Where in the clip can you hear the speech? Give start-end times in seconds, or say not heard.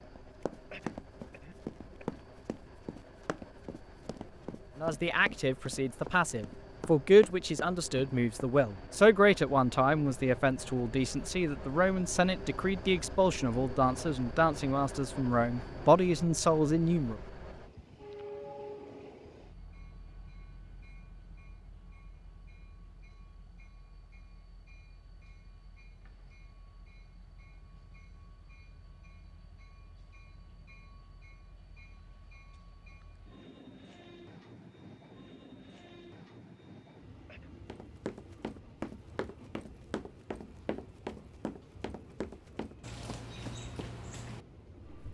4.8-17.2.